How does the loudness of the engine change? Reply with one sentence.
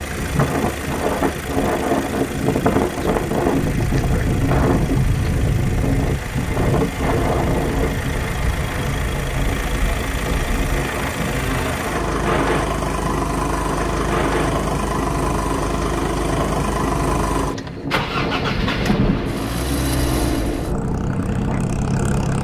The loudness of the engine goes up.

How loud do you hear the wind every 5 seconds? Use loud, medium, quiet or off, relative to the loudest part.
loud, loud, medium, medium, medium.